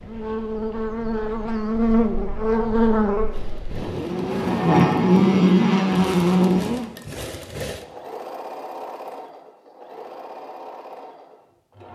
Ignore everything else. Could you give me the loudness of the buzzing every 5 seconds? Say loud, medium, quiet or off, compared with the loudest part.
medium, loud, off.